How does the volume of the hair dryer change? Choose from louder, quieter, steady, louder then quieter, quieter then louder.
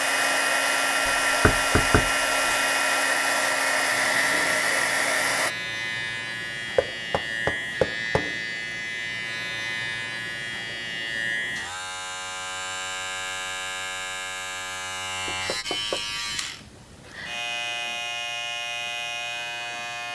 steady.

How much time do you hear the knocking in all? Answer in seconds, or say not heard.
4 s.